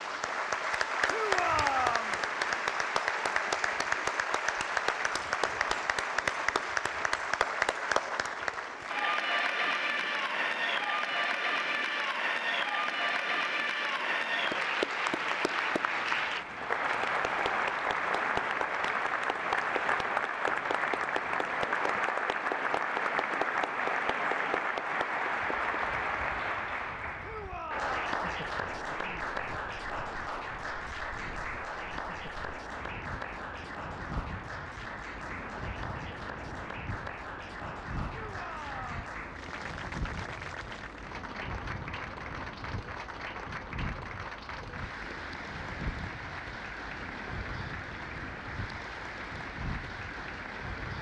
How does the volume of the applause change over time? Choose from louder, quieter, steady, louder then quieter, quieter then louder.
quieter.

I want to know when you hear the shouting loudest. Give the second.
2 s.